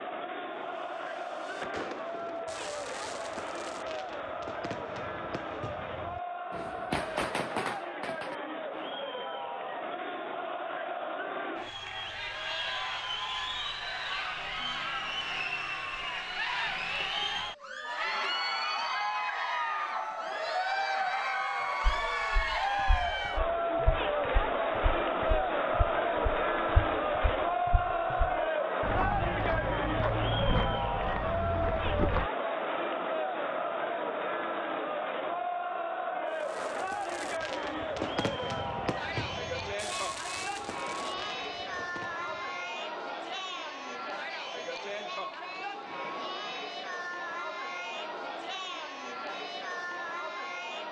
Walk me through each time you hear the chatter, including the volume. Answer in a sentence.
You can hear the chatter from 0.0 to 50.8 s, getting louder then quieter.